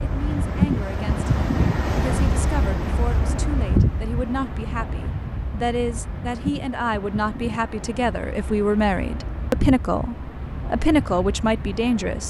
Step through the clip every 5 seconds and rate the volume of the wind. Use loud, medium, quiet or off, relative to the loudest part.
loud, medium, medium.